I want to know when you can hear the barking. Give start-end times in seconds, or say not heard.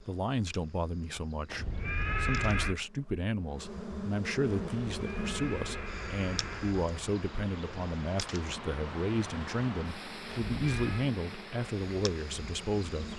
not heard.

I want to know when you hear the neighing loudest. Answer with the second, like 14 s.
2 s.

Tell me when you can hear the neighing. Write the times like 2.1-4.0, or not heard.
1.5-2.8, 4.9-6.8, 10.5-11.1.